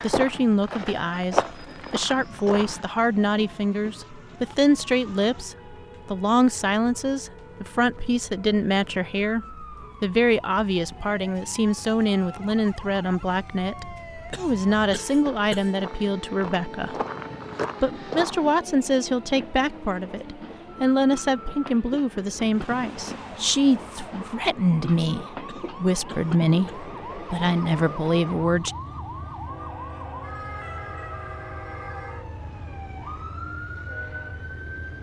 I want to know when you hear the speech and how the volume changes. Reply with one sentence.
You can hear the speech from 0.0 to 16.9 s, at a steady volume; and from 17.8 to 28.8 s, at a steady volume.